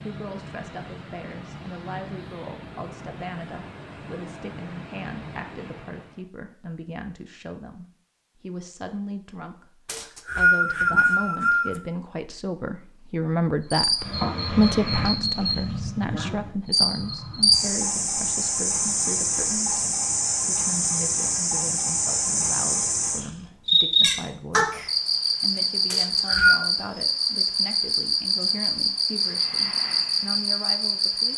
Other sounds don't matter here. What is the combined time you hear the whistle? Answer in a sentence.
The whistle can be heard for 3 seconds in total.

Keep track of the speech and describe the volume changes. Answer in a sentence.
The loudness of the speech goes up, then down.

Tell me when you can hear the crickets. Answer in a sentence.
You can hear the crickets from 13.7 to 31.3 s.